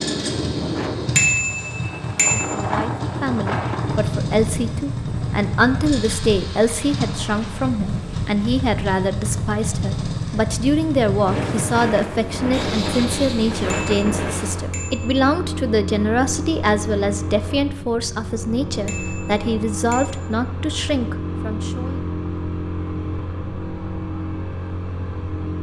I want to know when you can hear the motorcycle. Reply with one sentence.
The motorcycle can be heard from 0.0 to 25.5 s.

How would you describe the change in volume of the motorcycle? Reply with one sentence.
The volume of the motorcycle stays about the same.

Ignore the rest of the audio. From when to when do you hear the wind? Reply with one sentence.
You can hear the wind from 0.0 to 14.8 s.